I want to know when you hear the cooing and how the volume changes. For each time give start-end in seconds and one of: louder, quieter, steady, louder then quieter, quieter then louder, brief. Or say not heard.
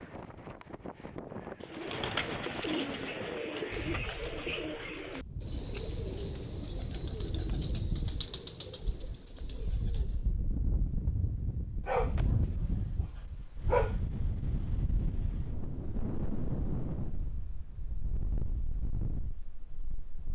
1.6-10.3 quieter.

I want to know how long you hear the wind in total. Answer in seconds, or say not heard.
20 s.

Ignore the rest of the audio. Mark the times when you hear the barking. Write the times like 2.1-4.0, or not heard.
11.8-14.1.